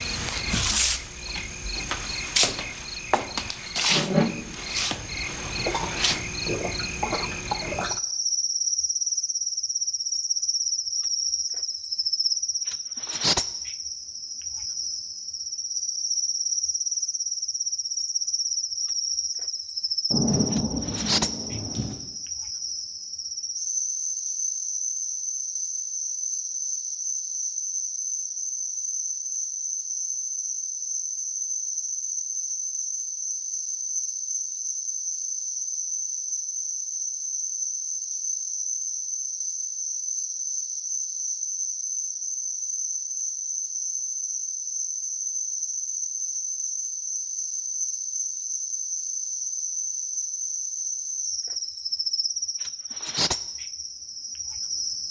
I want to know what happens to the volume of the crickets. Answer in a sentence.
The volume of the crickets stays about the same.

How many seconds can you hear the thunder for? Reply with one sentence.
You can hear the thunder for 2 seconds altogether.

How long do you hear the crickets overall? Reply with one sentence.
The crickets can be heard for 55 seconds in total.